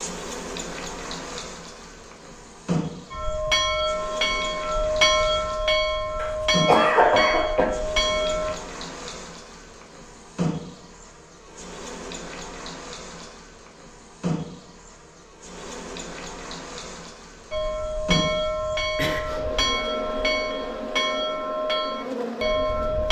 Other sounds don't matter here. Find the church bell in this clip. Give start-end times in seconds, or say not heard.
3.1-8.6, 17.5-23.0.